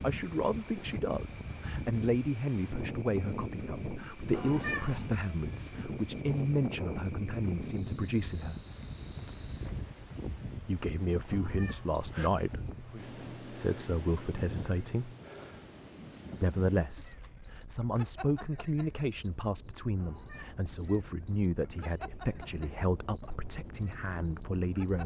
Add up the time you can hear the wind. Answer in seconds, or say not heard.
25 s.